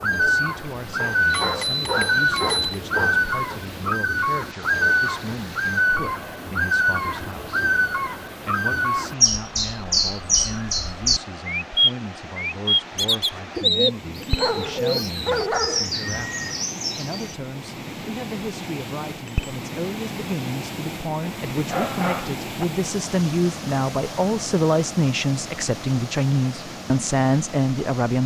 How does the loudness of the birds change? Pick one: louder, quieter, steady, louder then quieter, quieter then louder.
steady.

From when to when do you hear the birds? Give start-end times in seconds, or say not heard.
0.0-17.4.